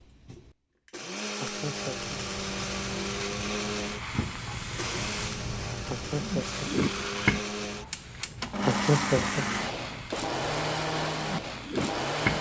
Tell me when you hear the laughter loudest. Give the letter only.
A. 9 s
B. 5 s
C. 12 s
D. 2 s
A.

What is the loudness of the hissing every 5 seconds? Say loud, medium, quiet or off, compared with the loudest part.
medium, loud, loud.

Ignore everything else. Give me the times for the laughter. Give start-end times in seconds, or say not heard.
1.4-2.2, 5.8-6.7, 8.6-9.4.